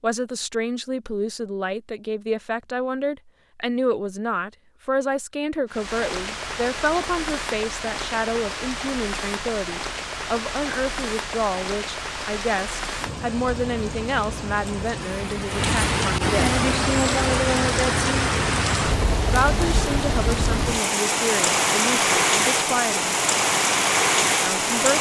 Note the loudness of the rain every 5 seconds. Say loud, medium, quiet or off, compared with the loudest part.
off, medium, medium, loud, loud.